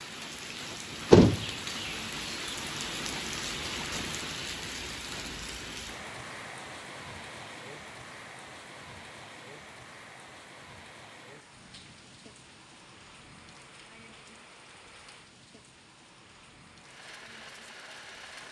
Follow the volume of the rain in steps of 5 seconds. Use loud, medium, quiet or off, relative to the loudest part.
loud, medium, quiet, quiet.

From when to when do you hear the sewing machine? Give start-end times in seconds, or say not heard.
16.8-18.4.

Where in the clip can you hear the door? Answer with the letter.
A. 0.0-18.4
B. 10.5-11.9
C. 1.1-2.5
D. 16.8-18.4
C.